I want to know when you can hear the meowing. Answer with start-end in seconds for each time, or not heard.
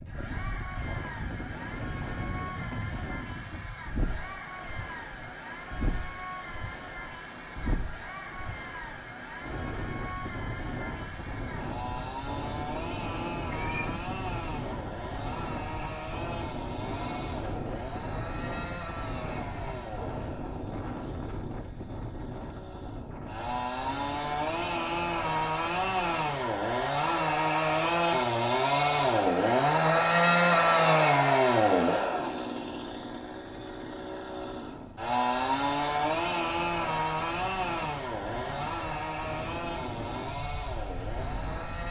13.5-14.3.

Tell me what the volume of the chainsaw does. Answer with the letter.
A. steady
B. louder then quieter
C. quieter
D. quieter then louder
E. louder
B.